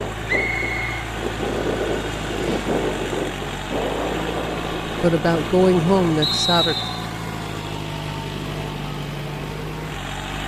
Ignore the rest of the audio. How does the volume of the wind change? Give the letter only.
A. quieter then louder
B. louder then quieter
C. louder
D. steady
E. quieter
B.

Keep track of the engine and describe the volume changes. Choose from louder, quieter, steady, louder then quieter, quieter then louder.
steady.